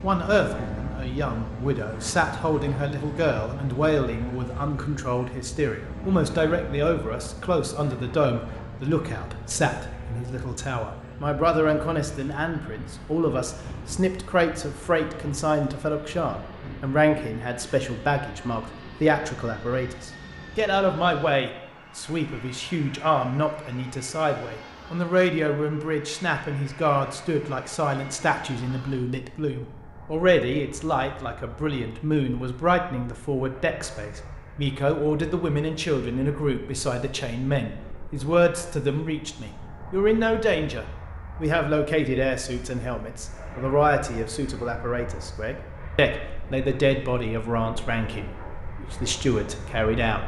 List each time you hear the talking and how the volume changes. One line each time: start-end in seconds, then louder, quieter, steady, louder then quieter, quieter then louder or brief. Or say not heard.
0.0-50.2 steady.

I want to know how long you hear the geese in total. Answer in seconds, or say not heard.
not heard.